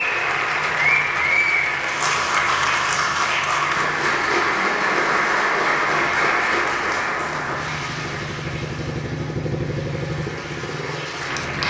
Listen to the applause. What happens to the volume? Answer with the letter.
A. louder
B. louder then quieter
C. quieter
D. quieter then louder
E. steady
C.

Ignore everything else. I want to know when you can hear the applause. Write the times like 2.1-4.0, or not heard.
0.0-11.6.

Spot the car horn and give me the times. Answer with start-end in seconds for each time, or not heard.
not heard.